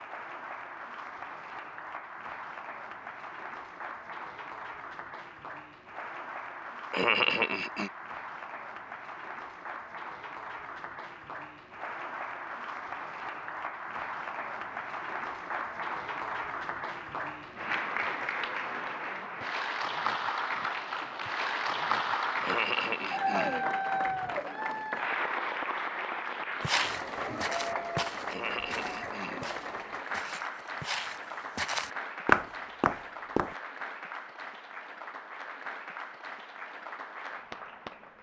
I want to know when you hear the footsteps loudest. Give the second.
32 s.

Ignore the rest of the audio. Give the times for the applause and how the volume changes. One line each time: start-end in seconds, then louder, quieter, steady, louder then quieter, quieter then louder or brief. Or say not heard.
0.0-38.1 louder then quieter.